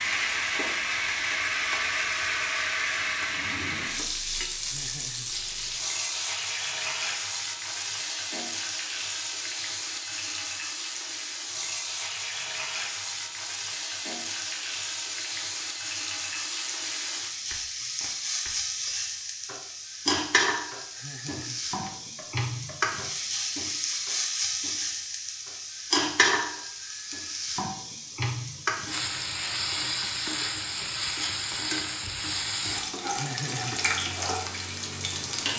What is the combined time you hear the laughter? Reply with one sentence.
You can hear the laughter for 2 seconds altogether.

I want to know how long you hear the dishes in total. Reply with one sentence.
You can't hear the dishes here.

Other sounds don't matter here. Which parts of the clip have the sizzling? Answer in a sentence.
You can hear the sizzling from 0.0 to 35.5 s.